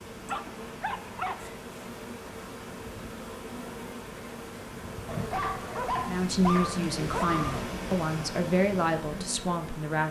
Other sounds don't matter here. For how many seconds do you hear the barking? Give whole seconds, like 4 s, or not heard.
4 s.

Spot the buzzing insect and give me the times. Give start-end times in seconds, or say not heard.
0.0-10.0.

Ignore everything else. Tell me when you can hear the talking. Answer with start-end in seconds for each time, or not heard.
6.0-10.0.